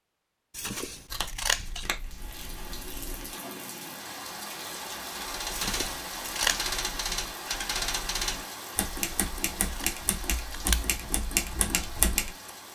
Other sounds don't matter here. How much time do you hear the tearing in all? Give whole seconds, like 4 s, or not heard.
2 s.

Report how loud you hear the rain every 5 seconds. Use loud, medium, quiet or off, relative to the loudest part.
loud, loud, medium.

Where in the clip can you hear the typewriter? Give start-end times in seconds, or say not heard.
5.1-12.5.